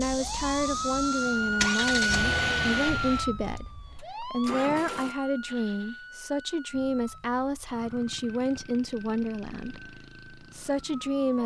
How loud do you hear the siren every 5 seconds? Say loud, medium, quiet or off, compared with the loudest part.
loud, quiet, quiet.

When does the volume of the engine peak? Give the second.
2 s.